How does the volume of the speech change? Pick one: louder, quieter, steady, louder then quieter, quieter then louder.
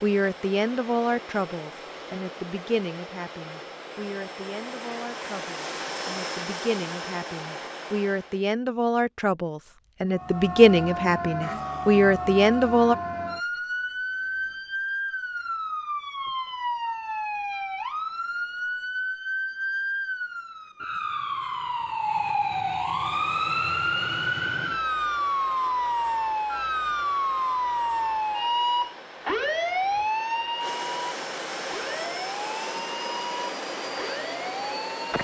quieter then louder.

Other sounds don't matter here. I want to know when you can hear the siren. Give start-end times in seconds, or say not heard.
10.1-35.1.